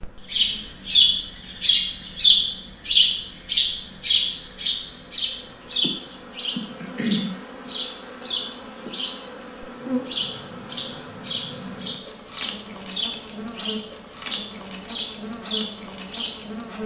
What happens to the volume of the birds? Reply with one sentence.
The loudness of the birds goes down.